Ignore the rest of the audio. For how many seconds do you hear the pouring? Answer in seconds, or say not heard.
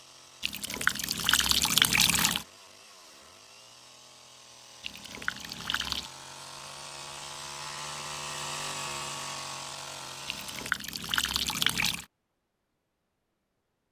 5 s.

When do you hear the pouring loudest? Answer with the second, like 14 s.
2 s.